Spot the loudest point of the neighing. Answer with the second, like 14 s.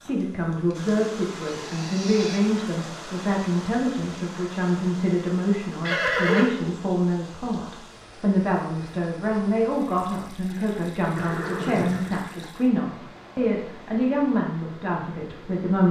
6 s.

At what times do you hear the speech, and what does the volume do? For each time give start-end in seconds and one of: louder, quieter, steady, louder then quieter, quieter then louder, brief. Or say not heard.
0.0-15.8 steady.